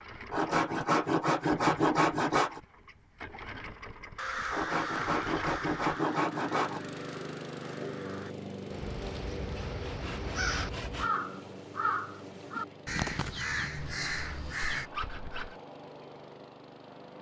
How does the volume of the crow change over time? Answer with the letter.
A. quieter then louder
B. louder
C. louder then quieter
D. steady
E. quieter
A.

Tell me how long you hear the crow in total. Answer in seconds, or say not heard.
11 s.